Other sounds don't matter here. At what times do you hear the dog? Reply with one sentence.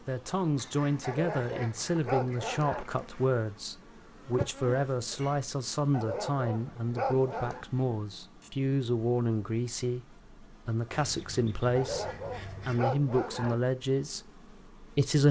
You can hear the dog from 1.0 to 2.9 s, from 5.9 to 7.7 s and from 11.8 to 13.6 s.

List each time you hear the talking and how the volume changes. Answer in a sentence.
The talking can be heard from 0.1 to 15.2 s, at a steady volume.